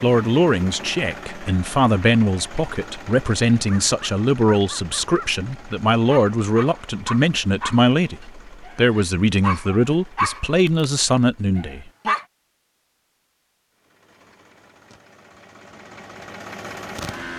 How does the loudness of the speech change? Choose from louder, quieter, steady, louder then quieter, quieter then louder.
steady.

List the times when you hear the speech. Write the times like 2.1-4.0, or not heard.
0.0-12.2.